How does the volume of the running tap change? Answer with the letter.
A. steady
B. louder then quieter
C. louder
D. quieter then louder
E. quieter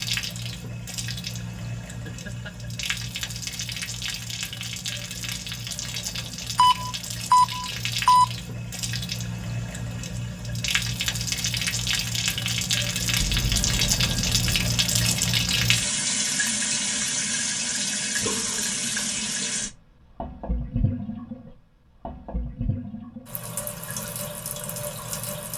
B.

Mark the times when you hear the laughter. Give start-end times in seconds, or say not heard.
2.0-2.5.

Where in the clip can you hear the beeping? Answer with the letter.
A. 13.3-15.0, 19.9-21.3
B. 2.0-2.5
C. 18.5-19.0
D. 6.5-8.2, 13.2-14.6
D.